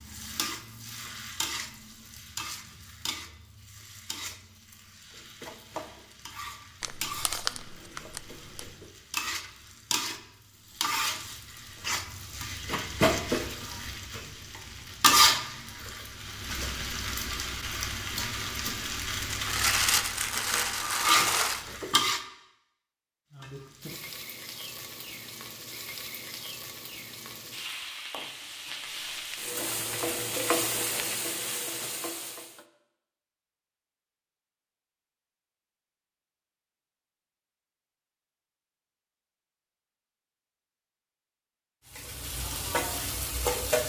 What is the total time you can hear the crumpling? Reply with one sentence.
The crumpling can be heard for 6 seconds in total.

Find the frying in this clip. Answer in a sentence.
The frying can be heard from 0.0 to 22.2 s, from 23.3 to 32.6 s and from 41.9 to 43.8 s.